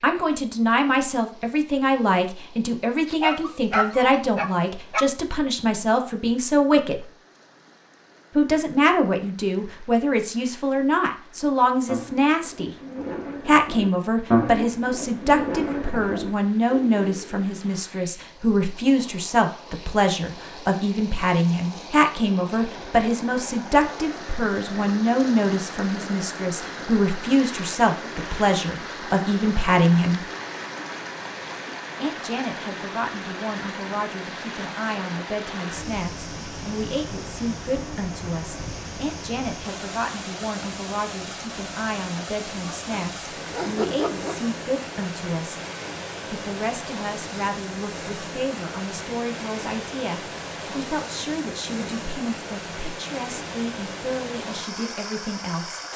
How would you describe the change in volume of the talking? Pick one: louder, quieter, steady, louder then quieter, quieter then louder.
quieter.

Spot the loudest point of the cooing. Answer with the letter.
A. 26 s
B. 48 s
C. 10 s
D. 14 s
D.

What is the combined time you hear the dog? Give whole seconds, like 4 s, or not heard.
4 s.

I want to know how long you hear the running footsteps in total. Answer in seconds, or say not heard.
not heard.